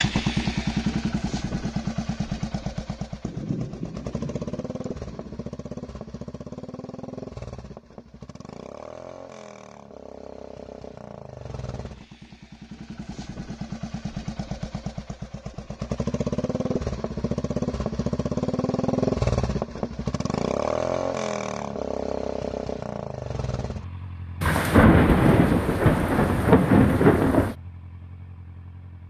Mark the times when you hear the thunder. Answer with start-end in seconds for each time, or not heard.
3.2-5.4, 24.4-27.6.